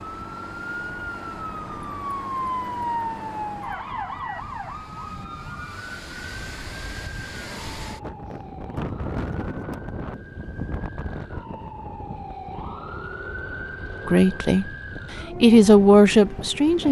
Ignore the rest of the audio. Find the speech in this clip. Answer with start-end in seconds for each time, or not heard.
14.1-14.7, 15.4-16.8.